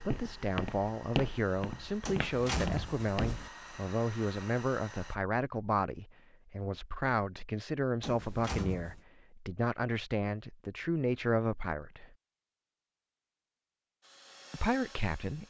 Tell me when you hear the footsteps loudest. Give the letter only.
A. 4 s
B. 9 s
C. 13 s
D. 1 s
D.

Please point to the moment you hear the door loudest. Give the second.
3 s.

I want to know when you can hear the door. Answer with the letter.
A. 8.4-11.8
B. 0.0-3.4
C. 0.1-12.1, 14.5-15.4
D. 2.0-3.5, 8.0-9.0
D.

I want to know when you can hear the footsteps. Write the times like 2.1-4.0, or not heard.
0.0-3.4.